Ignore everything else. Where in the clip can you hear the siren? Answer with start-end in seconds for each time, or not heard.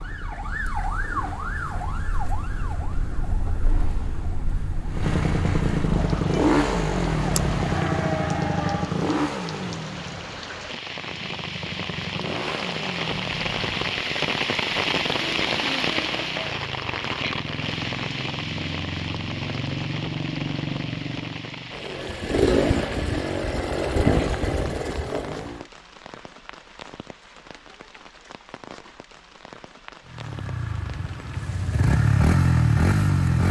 0.0-9.0.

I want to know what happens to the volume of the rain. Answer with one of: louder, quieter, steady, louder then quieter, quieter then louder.
louder then quieter.